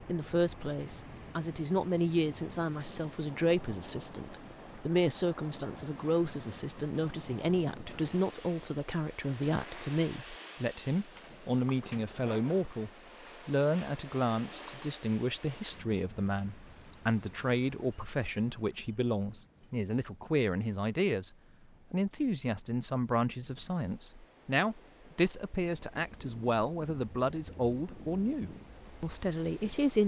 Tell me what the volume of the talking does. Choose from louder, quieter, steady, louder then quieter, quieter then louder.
steady.